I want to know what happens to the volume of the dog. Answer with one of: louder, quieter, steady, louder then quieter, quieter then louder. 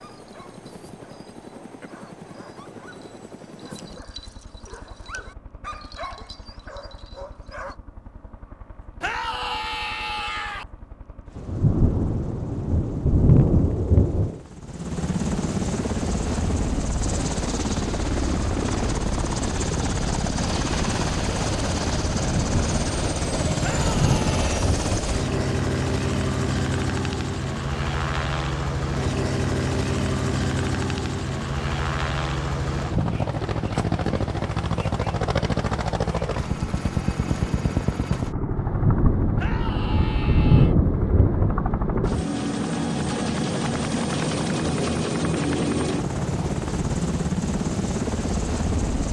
louder.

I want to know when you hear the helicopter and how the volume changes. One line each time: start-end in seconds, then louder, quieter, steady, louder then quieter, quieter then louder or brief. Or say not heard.
0.0-49.0 louder.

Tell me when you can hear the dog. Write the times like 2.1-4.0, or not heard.
0.0-7.8.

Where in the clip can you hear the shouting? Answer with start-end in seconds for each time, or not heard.
9.0-10.7, 23.6-24.7, 39.4-40.8.